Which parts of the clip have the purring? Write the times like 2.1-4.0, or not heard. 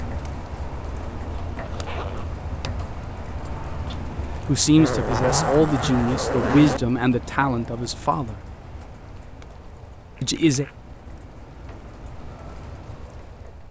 not heard.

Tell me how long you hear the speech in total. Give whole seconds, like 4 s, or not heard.
4 s.